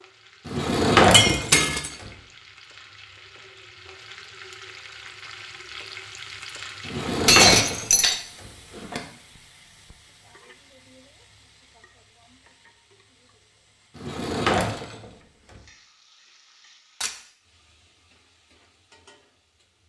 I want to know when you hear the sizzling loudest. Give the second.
6 s.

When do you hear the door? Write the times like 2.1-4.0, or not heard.
0.5-2.1, 6.8-9.0, 13.9-15.6.